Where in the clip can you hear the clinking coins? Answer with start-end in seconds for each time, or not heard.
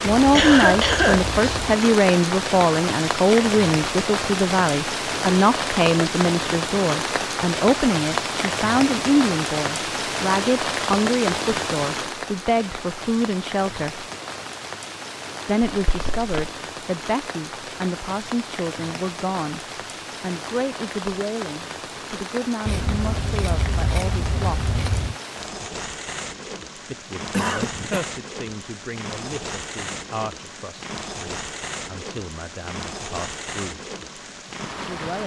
not heard.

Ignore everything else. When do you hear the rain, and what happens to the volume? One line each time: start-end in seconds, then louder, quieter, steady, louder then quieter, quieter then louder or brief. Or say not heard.
0.0-35.2 quieter.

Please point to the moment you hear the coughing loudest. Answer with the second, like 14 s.
1 s.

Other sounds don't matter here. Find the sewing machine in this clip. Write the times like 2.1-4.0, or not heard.
not heard.